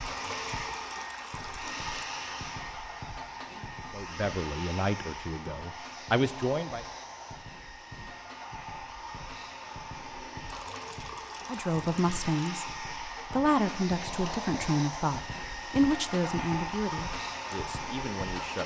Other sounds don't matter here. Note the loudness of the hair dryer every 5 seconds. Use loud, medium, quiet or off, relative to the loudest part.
loud, medium, loud, loud.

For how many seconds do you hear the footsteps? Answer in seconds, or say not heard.
not heard.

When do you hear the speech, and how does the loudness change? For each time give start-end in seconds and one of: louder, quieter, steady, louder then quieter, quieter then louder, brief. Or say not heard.
3.9-6.8 brief
11.4-18.6 quieter.